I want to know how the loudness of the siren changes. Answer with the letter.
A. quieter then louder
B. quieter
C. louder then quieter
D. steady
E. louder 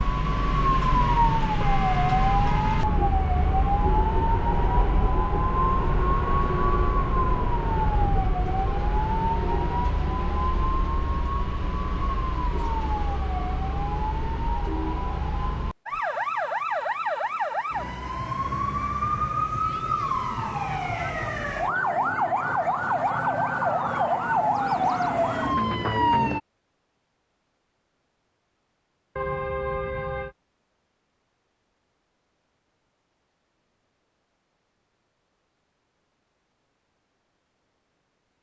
A.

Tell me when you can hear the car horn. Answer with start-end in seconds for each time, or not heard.
1.1-2.9, 14.6-15.1, 29.1-30.3.